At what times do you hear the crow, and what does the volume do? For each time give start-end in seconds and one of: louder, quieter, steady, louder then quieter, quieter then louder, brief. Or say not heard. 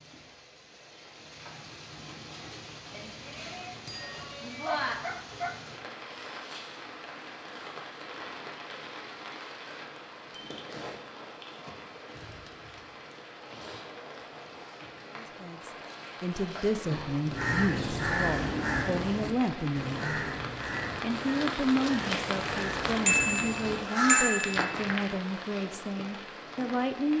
17.2-24.9 quieter then louder.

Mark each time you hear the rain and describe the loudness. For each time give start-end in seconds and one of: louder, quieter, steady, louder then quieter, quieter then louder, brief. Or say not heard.
0.0-27.1 louder.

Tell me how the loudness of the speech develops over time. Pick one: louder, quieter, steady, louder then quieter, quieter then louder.
steady.